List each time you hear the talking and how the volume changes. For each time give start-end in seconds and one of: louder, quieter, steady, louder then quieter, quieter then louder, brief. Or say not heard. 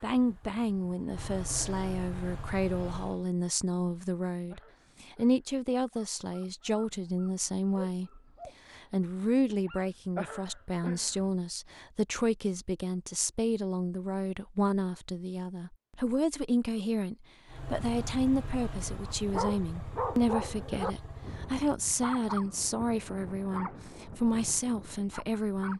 0.0-25.7 steady.